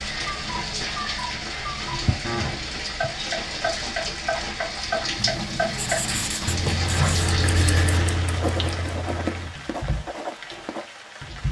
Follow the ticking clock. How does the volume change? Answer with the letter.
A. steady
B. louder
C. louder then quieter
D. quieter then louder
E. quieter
C.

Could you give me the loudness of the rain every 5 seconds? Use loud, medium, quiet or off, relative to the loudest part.
loud, loud, medium.